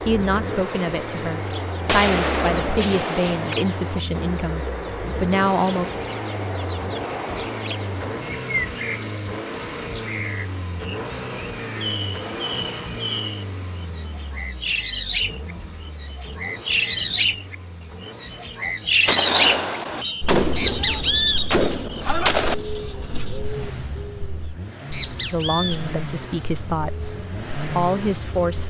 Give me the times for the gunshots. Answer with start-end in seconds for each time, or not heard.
1.9-3.5, 19.1-22.6.